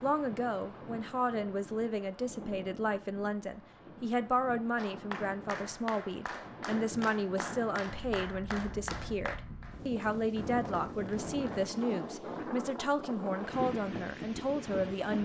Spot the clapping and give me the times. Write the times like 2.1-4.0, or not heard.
4.8-11.6.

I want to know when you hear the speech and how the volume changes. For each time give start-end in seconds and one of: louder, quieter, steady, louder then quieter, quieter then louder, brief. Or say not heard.
0.0-15.2 steady.